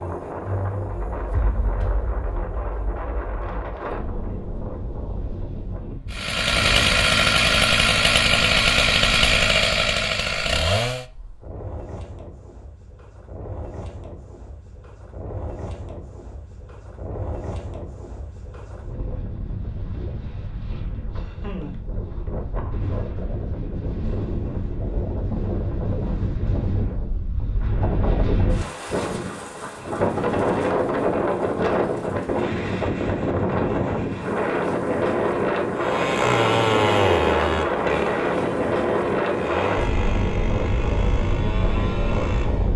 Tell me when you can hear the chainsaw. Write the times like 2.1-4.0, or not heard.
6.1-11.1, 35.8-42.7.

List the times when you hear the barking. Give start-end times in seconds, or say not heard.
not heard.